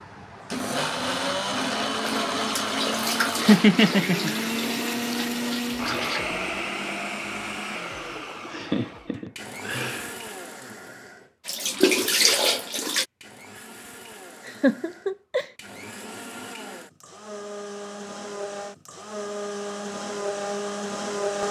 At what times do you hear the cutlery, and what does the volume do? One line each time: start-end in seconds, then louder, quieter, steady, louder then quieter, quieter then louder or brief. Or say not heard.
not heard.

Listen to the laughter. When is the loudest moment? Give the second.
4 s.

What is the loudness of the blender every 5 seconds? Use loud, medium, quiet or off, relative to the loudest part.
loud, loud, quiet, medium, loud.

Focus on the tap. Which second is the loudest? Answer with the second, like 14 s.
12 s.